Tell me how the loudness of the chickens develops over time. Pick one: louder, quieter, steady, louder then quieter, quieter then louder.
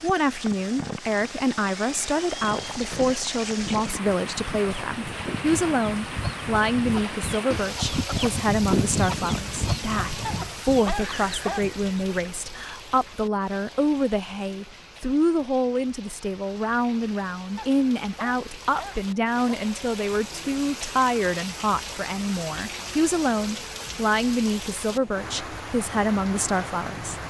louder then quieter.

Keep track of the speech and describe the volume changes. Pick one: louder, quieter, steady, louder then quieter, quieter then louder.
steady.